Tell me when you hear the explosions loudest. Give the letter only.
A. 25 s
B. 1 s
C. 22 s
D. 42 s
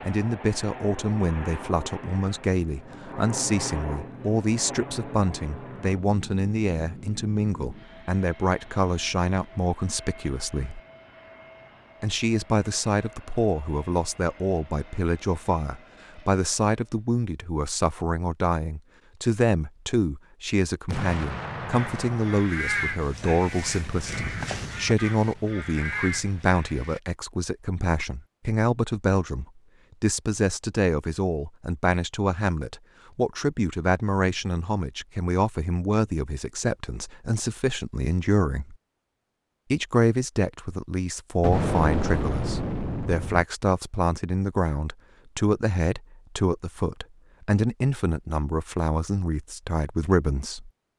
D.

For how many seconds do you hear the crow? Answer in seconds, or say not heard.
5 s.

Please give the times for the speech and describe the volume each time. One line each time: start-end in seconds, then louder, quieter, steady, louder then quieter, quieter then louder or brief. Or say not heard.
0.0-10.8 steady
12.0-38.8 steady
39.7-50.7 steady.